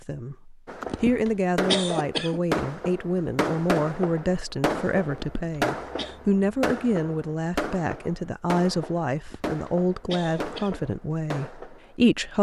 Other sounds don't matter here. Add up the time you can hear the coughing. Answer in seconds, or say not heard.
4 s.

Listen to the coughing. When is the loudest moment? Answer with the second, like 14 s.
2 s.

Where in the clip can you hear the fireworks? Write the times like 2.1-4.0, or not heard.
0.7-11.9.